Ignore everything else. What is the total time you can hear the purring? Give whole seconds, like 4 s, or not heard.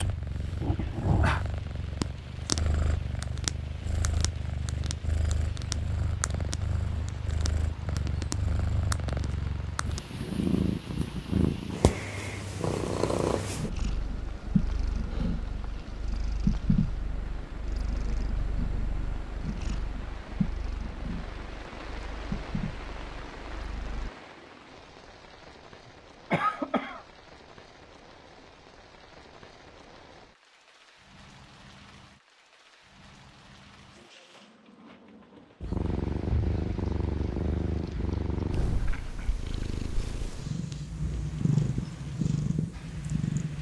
32 s.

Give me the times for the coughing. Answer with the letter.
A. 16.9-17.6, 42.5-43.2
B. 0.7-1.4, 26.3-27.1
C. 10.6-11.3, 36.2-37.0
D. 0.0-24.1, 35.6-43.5
B.